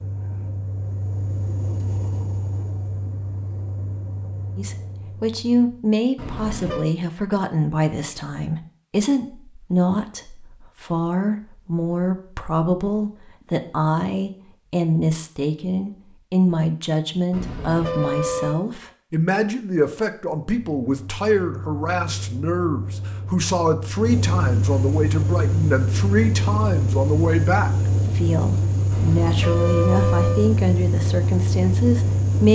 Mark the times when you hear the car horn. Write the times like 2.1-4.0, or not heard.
6.2-6.9, 17.3-18.6, 28.9-30.5.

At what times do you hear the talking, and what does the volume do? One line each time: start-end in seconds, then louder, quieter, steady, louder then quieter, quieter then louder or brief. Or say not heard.
4.5-32.5 steady.